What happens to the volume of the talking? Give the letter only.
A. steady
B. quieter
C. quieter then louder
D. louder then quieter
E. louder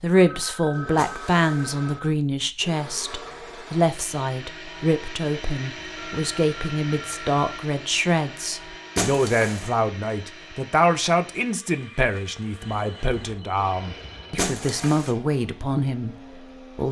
A.